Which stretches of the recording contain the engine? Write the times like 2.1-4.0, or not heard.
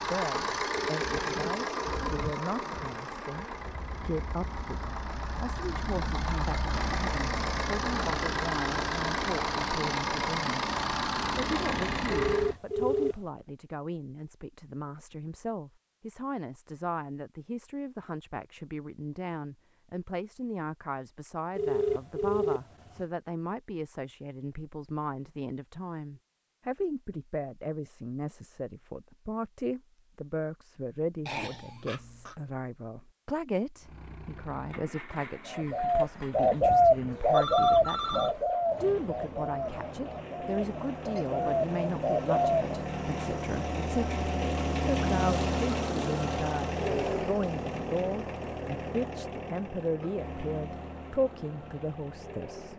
0.0-12.6, 33.8-52.7.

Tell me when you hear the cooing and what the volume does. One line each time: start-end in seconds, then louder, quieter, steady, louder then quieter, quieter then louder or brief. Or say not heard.
35.5-42.6 quieter then louder.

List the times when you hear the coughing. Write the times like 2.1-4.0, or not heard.
31.2-32.4.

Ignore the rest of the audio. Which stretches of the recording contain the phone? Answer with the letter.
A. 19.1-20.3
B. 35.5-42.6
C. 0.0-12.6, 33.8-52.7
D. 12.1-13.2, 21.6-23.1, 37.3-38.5
D.